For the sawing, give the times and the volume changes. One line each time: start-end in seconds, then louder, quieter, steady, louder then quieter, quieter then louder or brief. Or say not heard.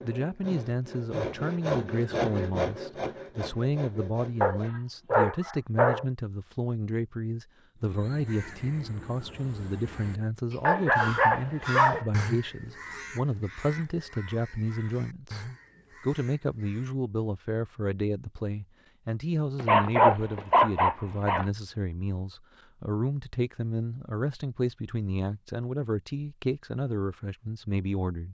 0.0-4.7 louder then quieter.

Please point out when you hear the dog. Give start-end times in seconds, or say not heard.
4.4-6.0, 10.6-12.1, 19.6-21.4.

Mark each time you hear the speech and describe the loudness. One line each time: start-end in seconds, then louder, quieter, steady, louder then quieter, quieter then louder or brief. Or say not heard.
0.0-28.2 steady.